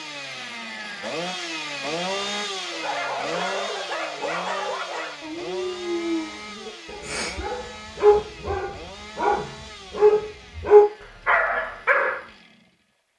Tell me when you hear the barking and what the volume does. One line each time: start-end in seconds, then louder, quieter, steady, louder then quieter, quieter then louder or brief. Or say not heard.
2.6-12.2 louder.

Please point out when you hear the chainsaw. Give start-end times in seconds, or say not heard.
0.0-13.1.